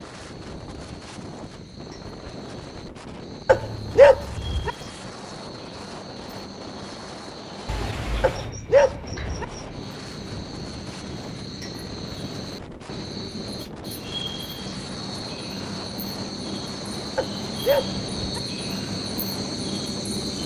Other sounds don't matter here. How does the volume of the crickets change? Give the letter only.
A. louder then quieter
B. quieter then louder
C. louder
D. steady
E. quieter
C.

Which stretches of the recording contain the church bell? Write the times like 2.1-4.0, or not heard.
not heard.